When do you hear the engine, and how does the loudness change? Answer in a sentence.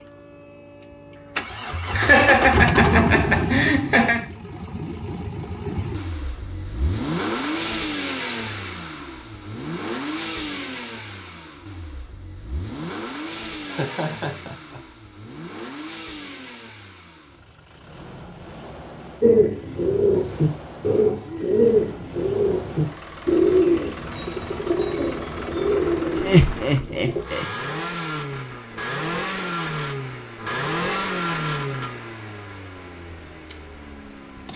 The engine can be heard from 0.0 to 34.5 s, getting quieter then louder.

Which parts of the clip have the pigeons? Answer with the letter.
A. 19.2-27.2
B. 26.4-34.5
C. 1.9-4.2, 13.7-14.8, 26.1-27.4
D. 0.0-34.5
A.